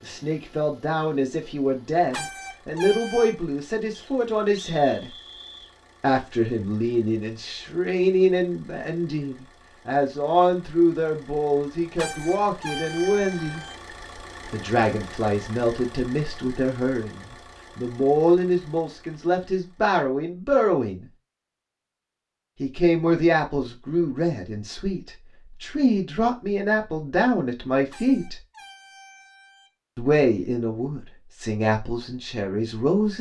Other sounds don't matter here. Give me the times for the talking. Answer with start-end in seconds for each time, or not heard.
0.0-5.1, 6.0-13.7, 14.5-21.1, 22.6-28.4, 29.9-33.1.